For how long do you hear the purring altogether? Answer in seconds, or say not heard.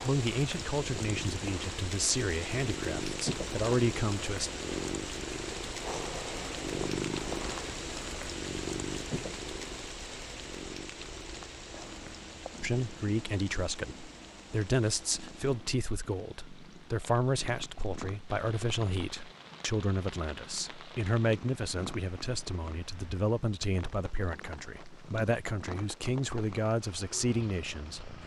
28 s.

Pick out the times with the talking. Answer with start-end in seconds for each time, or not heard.
0.0-4.5, 12.6-28.1.